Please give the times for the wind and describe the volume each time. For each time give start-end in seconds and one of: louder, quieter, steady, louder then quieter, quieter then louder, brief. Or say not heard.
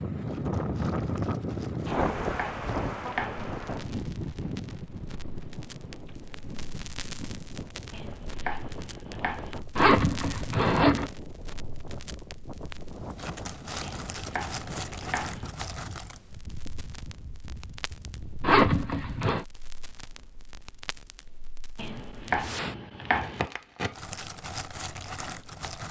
0.0-18.6 quieter.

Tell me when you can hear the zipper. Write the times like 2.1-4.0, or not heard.
9.8-11.1, 18.4-19.4.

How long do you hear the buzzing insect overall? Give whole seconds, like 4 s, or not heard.
not heard.